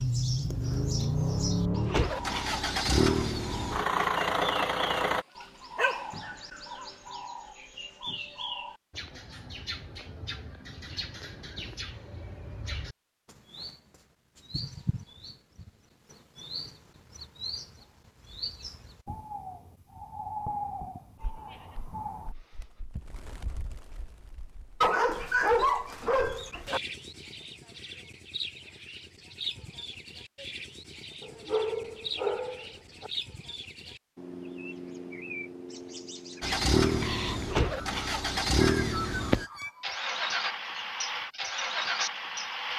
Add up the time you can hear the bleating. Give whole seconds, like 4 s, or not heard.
2 s.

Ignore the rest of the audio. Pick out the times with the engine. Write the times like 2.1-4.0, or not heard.
0.0-5.2, 36.4-42.7.